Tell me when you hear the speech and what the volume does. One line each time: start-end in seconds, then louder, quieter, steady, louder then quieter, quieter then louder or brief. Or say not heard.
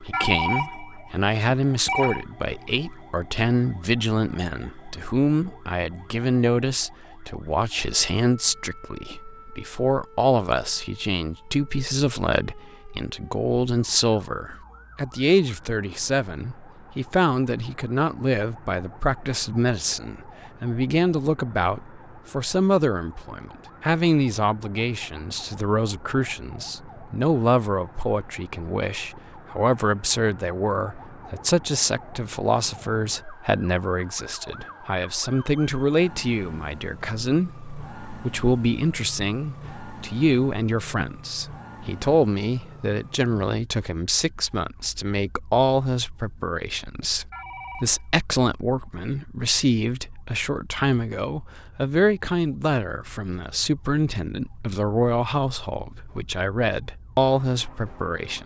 0.0-58.4 steady.